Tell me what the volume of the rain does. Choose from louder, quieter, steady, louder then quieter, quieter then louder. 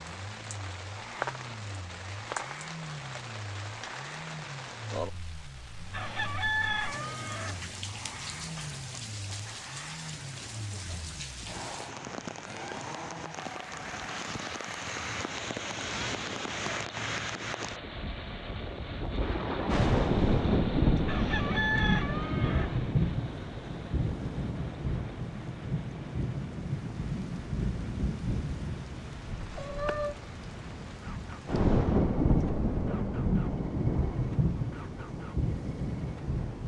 louder.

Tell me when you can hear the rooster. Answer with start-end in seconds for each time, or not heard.
5.9-7.6, 21.1-22.8.